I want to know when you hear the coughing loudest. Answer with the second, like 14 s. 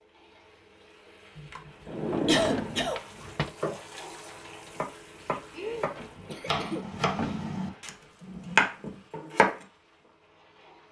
2 s.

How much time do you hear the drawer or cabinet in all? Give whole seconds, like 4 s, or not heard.
3 s.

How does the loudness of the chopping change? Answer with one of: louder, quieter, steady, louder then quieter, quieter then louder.
louder.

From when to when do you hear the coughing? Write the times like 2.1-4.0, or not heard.
1.4-3.0, 5.5-6.8.